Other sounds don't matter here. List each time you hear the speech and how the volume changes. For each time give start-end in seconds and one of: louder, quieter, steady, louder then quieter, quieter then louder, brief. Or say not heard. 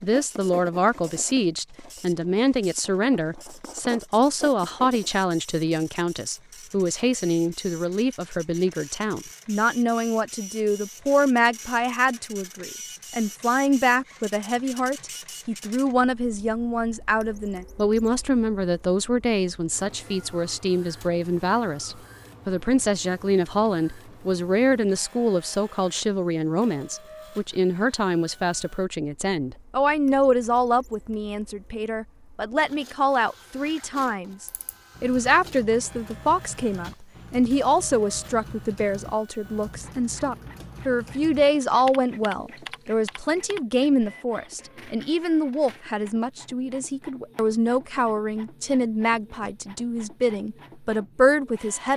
0.0-51.9 steady.